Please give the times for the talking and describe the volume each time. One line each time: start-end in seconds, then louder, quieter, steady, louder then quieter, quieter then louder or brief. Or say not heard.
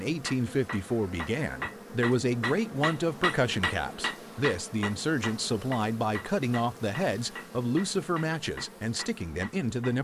0.0-9.9 steady.